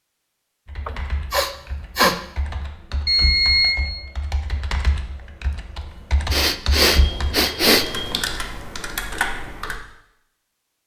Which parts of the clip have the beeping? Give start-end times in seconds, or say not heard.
3.0-3.8, 6.8-8.3.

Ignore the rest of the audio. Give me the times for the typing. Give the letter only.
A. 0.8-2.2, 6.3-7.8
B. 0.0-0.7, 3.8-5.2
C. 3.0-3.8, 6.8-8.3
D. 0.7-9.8
D.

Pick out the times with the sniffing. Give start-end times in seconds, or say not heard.
0.8-2.2, 6.3-7.8.